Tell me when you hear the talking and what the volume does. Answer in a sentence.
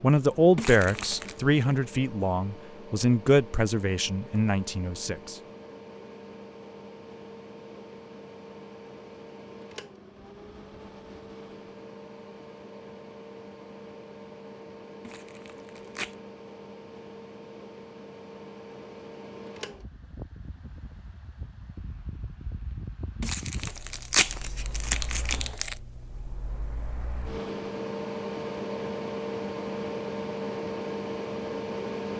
The talking can be heard from 0.0 to 5.3 s, getting quieter.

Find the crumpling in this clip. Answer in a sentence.
You can hear the crumpling from 0.6 to 1.4 s, from 15.1 to 16.1 s and from 23.2 to 25.8 s.